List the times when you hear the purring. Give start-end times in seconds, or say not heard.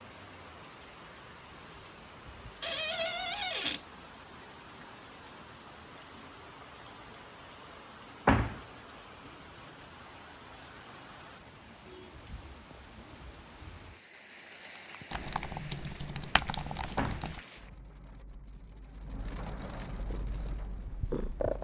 20.0-21.6.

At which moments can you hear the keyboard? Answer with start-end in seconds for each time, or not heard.
15.1-17.4.